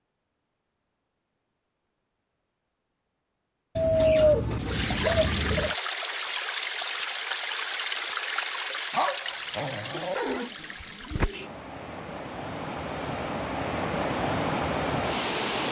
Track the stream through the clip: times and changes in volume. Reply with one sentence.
The stream can be heard from 4.5 to 15.6 s, getting quieter then louder.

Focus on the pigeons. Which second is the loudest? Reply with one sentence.
The loudest moment of the pigeons is at 4 seconds.